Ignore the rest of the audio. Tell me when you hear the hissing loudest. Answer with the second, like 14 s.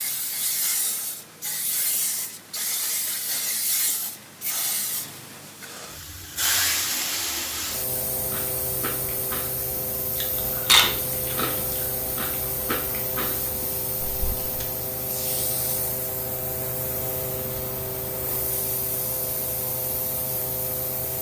7 s.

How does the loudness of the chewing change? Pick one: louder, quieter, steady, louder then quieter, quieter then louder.
louder then quieter.